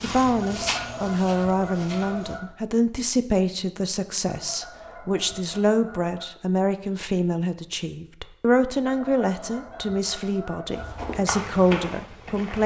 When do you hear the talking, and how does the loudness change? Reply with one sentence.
You can hear the talking from 0.0 to 12.6 s, at a steady volume.